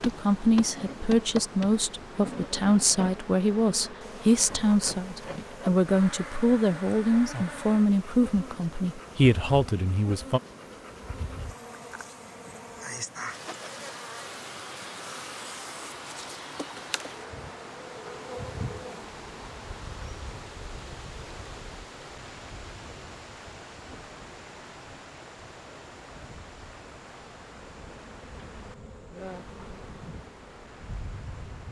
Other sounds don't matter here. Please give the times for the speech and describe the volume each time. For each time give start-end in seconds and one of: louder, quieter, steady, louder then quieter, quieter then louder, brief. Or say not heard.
0.0-10.4 steady.